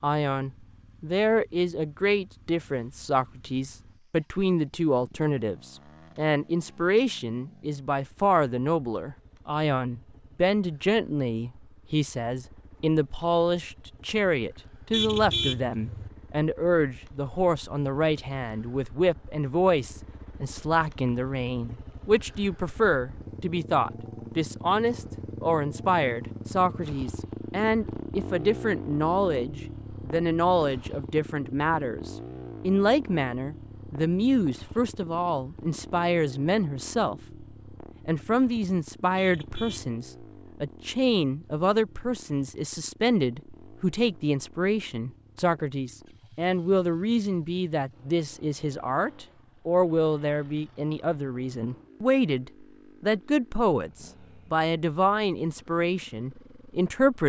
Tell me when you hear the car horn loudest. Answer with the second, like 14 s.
15 s.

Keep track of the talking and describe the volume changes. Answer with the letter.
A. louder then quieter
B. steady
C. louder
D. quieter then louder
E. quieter
B.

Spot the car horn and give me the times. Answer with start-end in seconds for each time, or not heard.
14.9-16.1, 39.1-40.0.